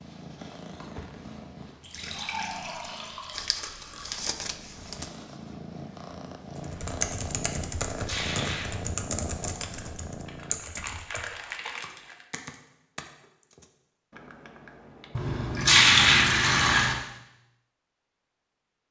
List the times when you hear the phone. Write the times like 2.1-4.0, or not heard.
not heard.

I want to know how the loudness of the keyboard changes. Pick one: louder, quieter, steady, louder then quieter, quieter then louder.
quieter.